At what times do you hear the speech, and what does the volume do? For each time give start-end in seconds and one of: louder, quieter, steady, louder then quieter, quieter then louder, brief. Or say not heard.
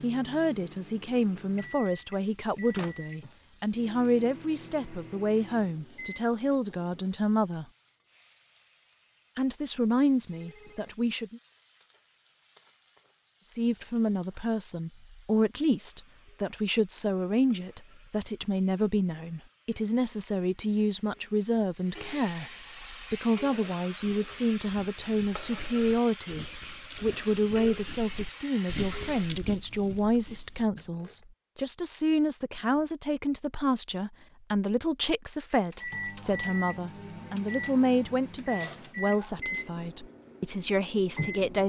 0.0-7.7 steady
9.3-11.4 brief
13.4-41.6 steady.